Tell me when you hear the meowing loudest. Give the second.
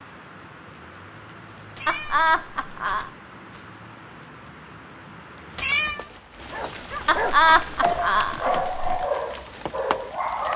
6 s.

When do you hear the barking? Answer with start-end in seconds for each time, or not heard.
6.5-10.5.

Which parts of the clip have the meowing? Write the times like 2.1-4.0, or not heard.
1.7-3.6, 5.5-6.1.